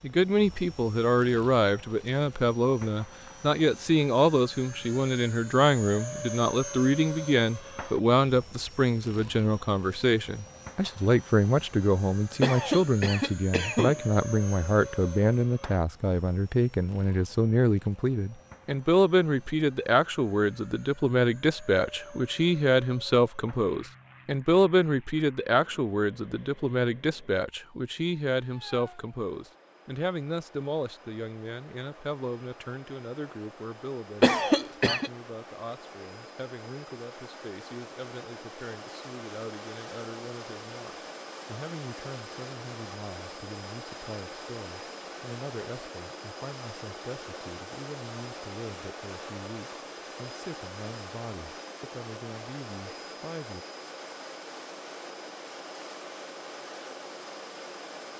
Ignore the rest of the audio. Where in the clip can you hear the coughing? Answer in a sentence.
You can hear the coughing from 12.4 to 14.0 s and from 34.2 to 35.1 s.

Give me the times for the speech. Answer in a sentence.
The speech can be heard from 0.0 to 53.6 s.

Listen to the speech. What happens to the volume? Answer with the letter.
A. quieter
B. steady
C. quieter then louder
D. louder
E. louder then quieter
A.